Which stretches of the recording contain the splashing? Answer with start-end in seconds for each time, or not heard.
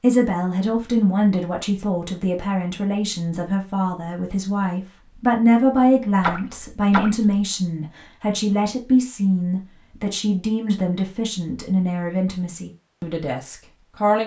6.2-7.3.